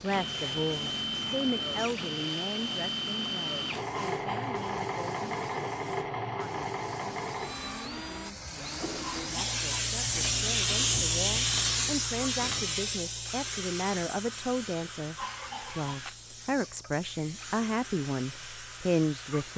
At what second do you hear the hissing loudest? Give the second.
11 s.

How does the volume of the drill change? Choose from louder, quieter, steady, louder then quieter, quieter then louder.
quieter.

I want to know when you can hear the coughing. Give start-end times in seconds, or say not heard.
3.9-4.7, 9.0-9.8, 15.2-15.9.